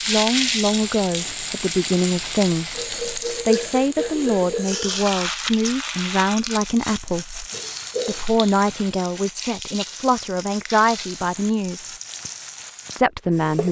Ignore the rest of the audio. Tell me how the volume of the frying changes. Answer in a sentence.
The volume of the frying goes down.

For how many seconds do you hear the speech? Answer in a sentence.
The speech can be heard for 12 seconds in total.